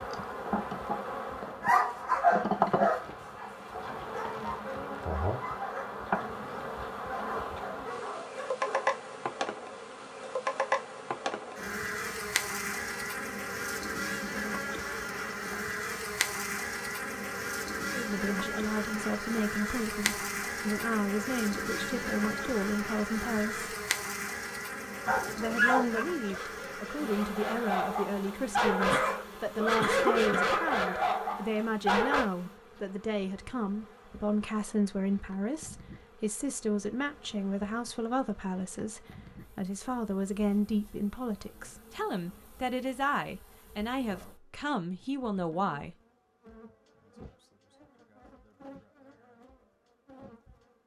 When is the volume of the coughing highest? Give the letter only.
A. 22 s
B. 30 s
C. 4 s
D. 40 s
B.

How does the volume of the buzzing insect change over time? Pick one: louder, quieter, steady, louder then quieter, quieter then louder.
quieter.